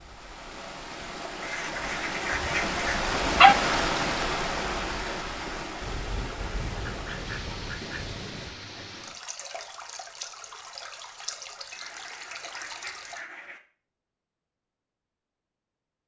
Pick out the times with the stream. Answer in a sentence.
The stream can be heard from 0.0 to 13.2 s.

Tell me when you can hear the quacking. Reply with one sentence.
You can hear the quacking from 1.4 to 3.0 s, from 5.8 to 8.6 s and from 11.7 to 13.6 s.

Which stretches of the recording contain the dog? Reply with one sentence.
You can hear the dog from 2.4 to 3.5 s.